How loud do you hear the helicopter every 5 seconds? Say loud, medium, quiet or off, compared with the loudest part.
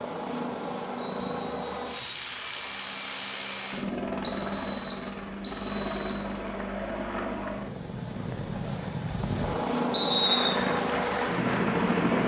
medium, medium, loud.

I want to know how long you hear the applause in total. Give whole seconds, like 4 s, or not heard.
2 s.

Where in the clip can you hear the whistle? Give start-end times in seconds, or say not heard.
0.9-2.2, 4.2-6.2, 9.9-10.6.